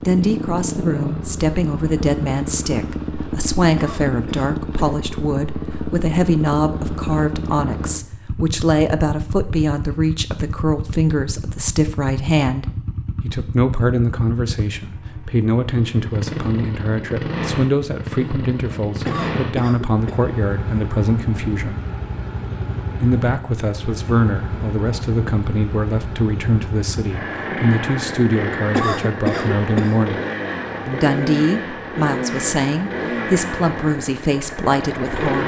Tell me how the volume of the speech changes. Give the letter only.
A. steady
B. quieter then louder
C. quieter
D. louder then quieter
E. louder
A.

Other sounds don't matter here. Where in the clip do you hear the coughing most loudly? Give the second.
29 s.